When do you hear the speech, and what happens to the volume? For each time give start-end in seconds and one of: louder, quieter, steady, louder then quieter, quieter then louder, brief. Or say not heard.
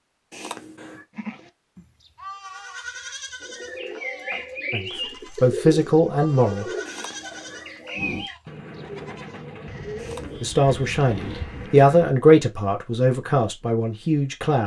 4.7-6.7 brief
10.4-14.6 louder then quieter.